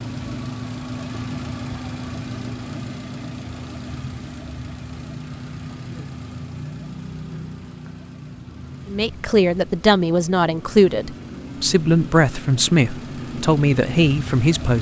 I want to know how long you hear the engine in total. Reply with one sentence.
The engine can be heard for 15 seconds in total.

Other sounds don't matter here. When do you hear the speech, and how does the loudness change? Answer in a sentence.
You can hear the speech from 8.8 to 14.7 s, at a steady volume.